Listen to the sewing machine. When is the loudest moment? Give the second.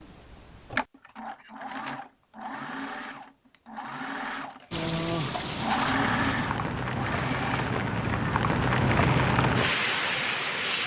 6 s.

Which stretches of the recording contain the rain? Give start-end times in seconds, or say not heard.
4.7-10.8.